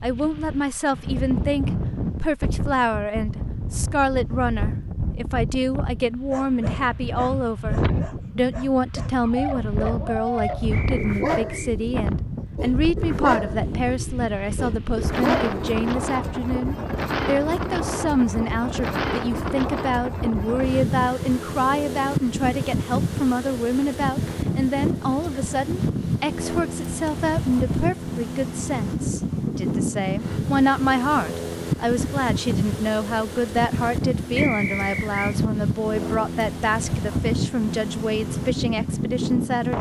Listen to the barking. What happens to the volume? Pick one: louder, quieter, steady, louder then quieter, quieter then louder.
louder then quieter.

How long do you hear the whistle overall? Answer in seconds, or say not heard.
2 s.